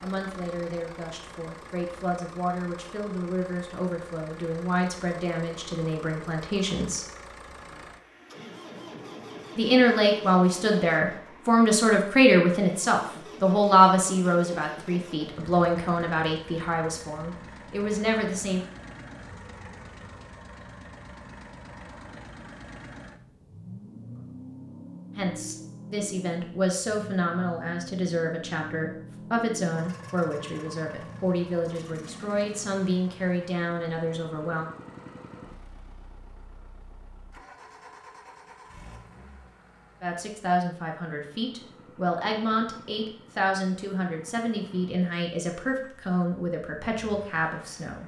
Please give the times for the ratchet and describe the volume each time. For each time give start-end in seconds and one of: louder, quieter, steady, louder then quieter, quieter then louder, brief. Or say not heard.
not heard.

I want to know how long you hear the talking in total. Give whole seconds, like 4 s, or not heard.
34 s.